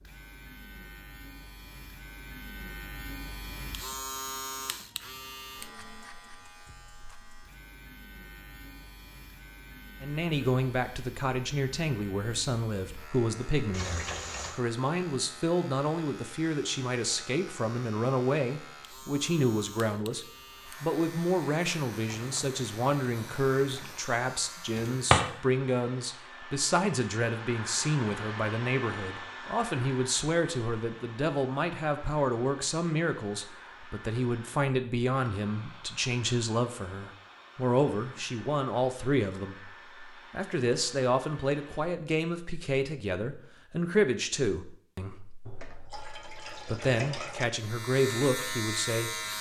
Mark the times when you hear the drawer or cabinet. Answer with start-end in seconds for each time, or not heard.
24.8-25.2.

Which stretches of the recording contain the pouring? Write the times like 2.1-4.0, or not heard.
13.7-14.6, 22.1-24.1, 45.5-47.5.